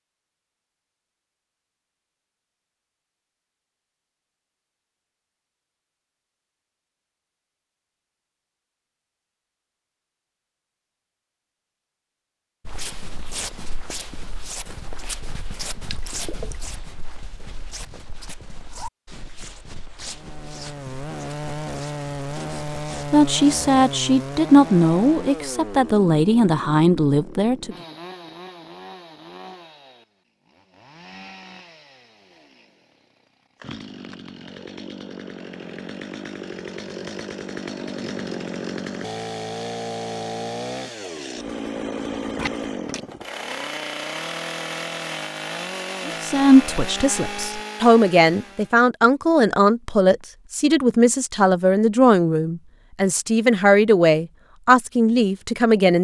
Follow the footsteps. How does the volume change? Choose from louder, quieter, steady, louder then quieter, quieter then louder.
quieter.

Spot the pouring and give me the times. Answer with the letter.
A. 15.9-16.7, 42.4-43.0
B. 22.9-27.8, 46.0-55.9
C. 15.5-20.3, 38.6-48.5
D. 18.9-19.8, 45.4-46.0
A.